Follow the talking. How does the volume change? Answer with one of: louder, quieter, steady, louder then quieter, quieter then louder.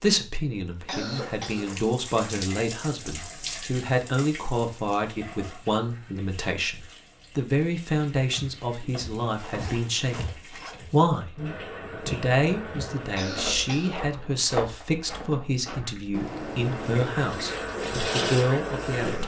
steady.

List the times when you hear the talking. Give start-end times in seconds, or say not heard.
0.0-11.3, 12.1-19.2.